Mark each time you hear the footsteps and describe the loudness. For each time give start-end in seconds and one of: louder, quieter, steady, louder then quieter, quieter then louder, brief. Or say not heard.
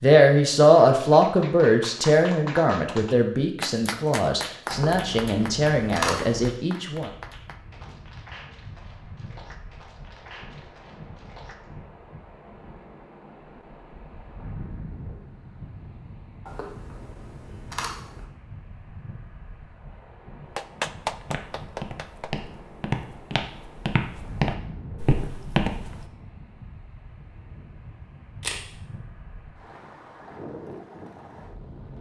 21.1-26.1 louder.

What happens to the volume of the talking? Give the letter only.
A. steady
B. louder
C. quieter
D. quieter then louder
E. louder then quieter
C.